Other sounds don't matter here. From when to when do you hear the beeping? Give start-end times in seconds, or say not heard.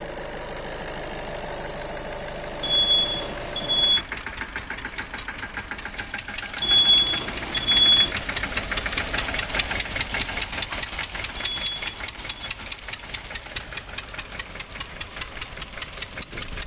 2.6-4.0, 6.6-8.2, 11.3-12.5.